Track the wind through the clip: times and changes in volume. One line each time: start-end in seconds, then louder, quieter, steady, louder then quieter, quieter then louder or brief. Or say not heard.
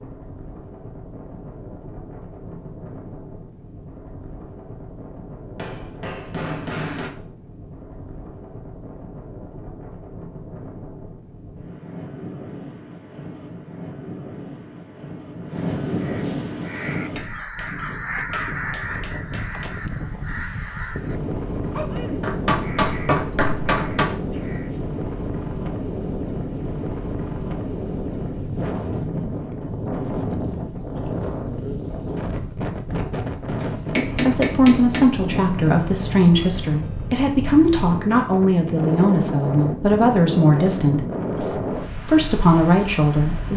0.0-43.5 louder.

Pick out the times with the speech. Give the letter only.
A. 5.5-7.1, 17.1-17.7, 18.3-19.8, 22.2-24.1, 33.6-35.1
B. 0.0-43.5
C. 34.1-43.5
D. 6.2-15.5
C.